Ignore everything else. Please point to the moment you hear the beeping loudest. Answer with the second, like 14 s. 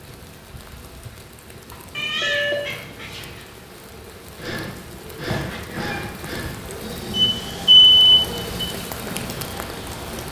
8 s.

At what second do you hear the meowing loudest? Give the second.
2 s.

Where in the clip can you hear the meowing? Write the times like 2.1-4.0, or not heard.
1.9-3.5, 5.2-6.2.